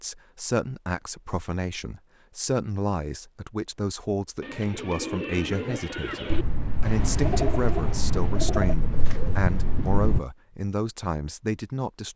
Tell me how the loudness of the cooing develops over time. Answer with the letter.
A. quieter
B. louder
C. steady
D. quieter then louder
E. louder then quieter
C.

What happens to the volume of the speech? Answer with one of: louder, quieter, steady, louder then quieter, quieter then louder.
steady.